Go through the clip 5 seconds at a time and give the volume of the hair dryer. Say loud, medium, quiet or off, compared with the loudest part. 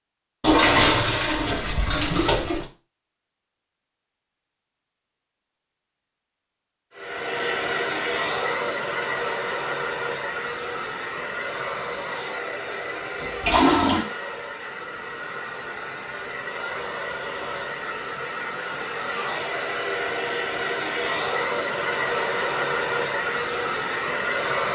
off, loud, medium, medium, loud.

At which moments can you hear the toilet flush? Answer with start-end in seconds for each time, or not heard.
0.4-2.6, 13.2-14.1.